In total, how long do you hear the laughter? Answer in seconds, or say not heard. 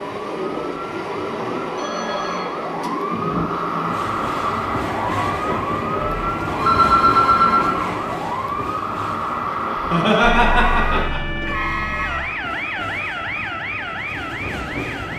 2 s.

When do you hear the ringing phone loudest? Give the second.
7 s.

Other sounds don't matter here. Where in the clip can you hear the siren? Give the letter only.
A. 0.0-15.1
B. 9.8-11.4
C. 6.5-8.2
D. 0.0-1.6
A.